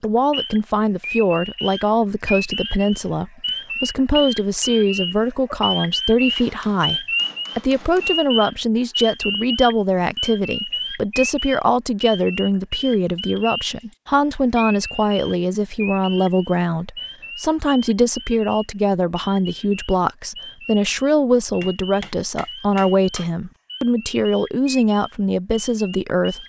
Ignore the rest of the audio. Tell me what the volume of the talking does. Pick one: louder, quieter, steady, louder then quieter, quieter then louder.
steady.